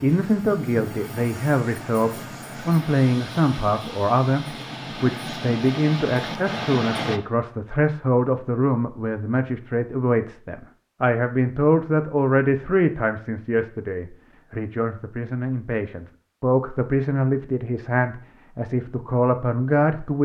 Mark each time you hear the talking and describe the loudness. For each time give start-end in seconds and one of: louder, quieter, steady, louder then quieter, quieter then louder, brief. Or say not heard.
0.0-20.1 steady.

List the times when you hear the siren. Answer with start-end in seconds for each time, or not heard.
not heard.